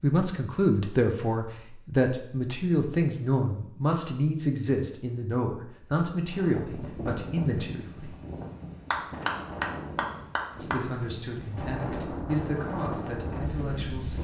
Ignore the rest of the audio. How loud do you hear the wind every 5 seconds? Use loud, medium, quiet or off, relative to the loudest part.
off, loud, loud.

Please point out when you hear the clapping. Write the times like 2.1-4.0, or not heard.
8.9-10.8.